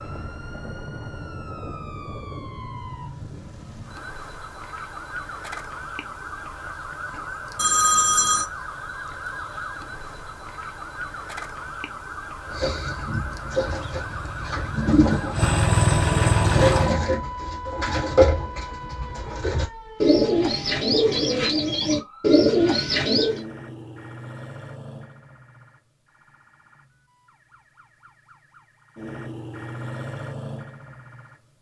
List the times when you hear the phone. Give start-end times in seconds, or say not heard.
7.5-8.4.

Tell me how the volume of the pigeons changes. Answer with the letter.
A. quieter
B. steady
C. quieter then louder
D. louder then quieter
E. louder
E.